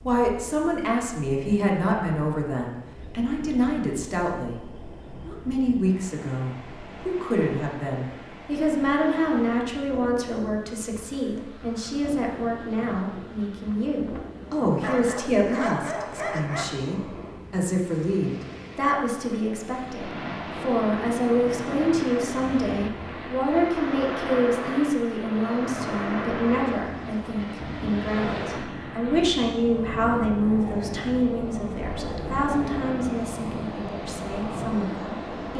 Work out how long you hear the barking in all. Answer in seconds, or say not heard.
2 s.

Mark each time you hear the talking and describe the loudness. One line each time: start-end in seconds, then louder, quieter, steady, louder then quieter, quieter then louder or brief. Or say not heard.
0.1-35.5 steady.